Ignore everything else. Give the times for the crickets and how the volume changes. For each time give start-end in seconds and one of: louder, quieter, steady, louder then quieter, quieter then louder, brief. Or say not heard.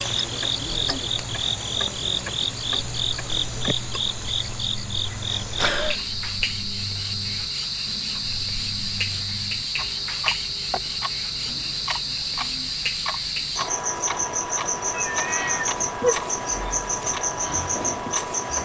0.0-18.6 steady.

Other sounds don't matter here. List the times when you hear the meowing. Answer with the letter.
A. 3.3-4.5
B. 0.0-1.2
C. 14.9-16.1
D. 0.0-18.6
C.